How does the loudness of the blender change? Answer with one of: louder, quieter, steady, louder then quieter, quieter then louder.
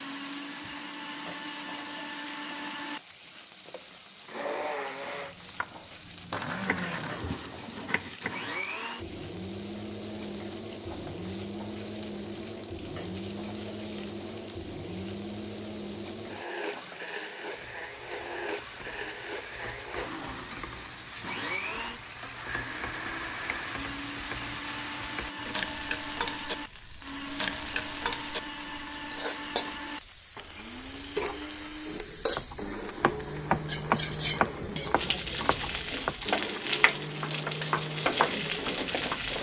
steady.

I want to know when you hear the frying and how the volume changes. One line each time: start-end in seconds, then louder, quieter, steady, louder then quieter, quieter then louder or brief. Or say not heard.
0.0-39.3 louder.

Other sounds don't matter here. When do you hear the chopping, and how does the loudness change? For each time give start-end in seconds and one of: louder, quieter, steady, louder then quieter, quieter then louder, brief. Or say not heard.
5.5-8.5 brief
32.4-39.2 quieter then louder.